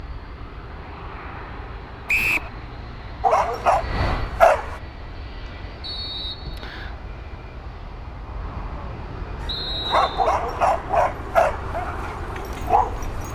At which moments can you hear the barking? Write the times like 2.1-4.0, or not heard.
3.2-4.8, 9.4-13.2.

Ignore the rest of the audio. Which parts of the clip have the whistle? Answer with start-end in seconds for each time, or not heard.
2.0-2.5, 5.8-7.0, 9.4-10.3.